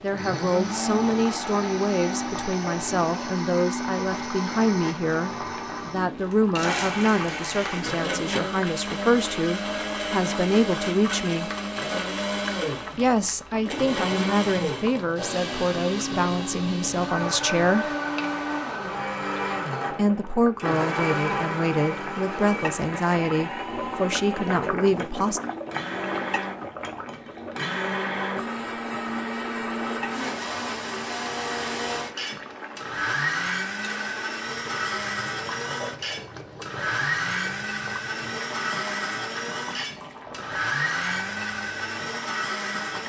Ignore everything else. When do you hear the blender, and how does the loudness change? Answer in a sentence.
You can hear the blender from 0.0 to 43.0 s, at a steady volume.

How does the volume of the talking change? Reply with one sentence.
The volume of the talking stays about the same.